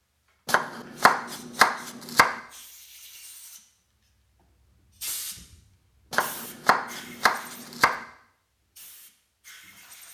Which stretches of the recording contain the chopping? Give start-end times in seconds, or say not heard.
0.5-2.4, 6.1-8.1.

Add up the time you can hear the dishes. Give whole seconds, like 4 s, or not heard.
not heard.